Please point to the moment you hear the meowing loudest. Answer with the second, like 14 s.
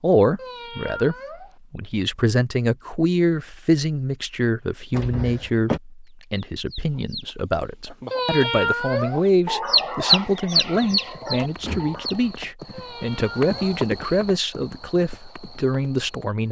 9 s.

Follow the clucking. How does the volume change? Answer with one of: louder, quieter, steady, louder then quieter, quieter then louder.
louder then quieter.